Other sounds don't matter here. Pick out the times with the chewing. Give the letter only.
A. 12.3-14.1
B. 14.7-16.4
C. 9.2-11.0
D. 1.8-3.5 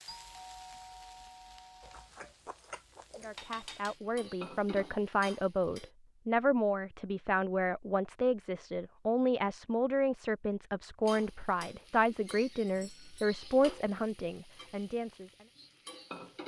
D.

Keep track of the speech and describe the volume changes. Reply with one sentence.
The volume of the speech stays about the same.